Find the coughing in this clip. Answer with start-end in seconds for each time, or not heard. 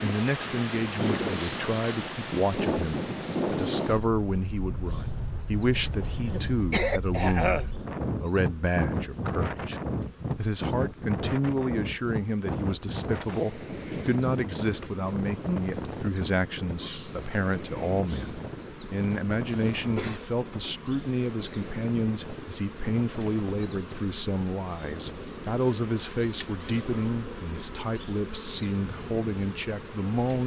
5.8-7.7, 19.8-20.2.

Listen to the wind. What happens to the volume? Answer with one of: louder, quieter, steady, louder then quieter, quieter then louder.
quieter.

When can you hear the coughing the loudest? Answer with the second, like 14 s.
7 s.